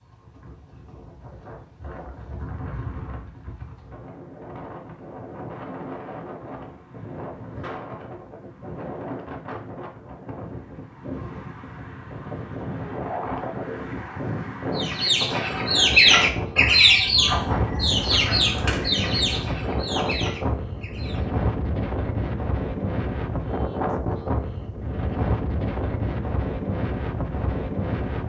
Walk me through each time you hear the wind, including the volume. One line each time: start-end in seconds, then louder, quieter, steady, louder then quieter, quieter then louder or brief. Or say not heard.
0.0-28.2 louder.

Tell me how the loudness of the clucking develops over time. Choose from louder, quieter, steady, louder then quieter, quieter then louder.
quieter.